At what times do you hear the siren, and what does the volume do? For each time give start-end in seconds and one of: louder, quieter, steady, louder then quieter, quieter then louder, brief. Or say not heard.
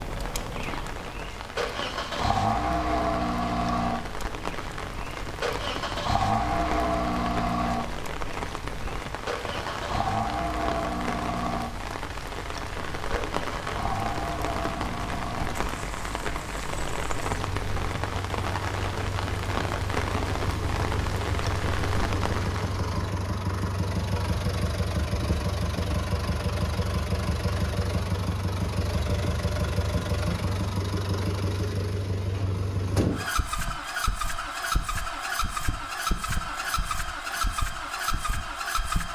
not heard.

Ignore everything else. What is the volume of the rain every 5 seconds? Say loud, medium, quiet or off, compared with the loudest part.
medium, loud, loud, loud, loud, off, off, off.